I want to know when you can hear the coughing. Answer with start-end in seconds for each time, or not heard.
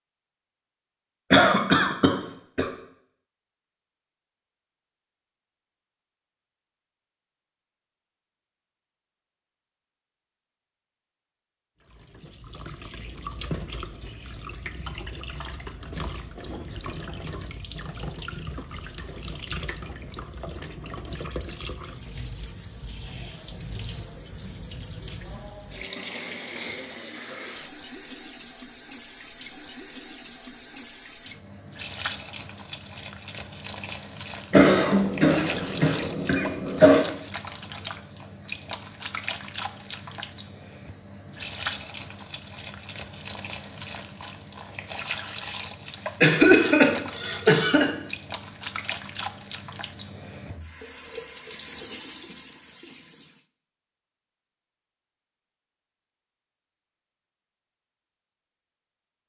1.3-2.6, 34.5-37.0, 46.2-47.9.